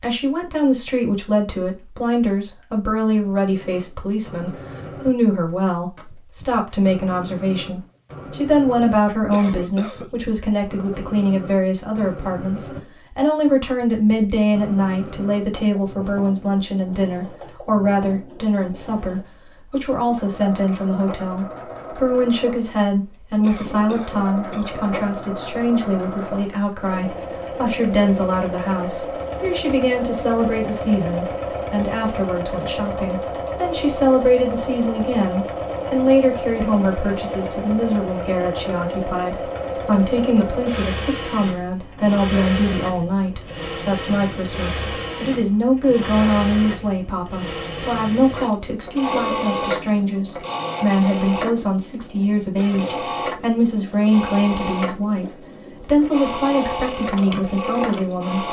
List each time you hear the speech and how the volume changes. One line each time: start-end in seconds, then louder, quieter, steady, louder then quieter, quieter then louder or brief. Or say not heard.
0.0-58.4 steady.